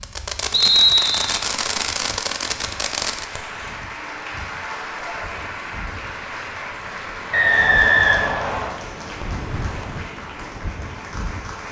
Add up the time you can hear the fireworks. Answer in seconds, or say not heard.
3 s.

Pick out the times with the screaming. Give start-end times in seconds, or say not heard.
not heard.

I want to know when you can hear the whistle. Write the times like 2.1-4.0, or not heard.
0.5-1.4, 7.3-8.7.